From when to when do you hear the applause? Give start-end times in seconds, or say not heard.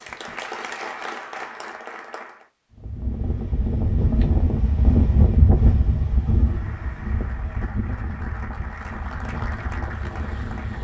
0.0-2.5, 6.4-10.7.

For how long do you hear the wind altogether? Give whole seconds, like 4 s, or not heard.
8 s.